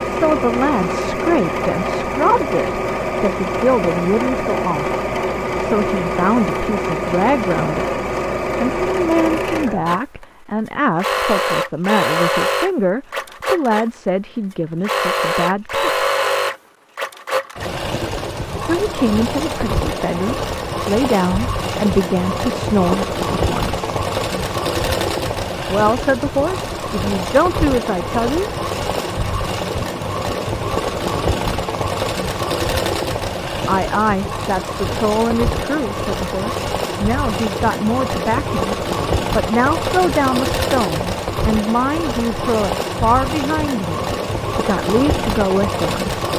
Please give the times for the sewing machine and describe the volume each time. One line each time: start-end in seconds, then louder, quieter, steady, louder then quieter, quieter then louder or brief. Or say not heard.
0.0-46.3 steady.